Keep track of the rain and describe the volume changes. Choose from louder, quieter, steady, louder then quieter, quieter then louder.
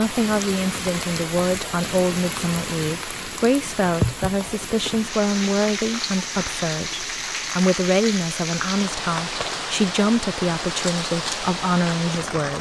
steady.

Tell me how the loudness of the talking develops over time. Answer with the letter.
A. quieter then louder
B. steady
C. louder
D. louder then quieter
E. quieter
B.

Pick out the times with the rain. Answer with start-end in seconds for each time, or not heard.
0.0-12.5.